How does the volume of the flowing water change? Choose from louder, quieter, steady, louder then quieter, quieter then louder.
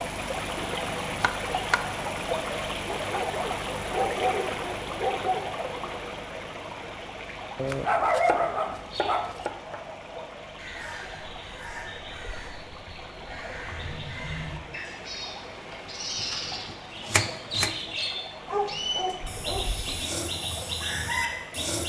quieter.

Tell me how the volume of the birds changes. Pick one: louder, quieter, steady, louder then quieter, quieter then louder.
louder.